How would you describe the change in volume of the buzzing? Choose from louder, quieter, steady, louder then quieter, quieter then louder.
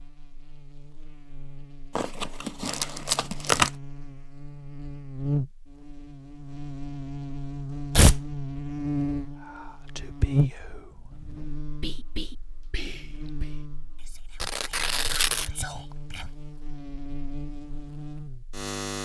louder then quieter.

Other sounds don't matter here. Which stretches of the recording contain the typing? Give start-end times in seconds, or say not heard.
not heard.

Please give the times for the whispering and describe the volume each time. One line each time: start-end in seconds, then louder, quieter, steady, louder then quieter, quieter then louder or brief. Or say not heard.
9.4-16.3 quieter then louder.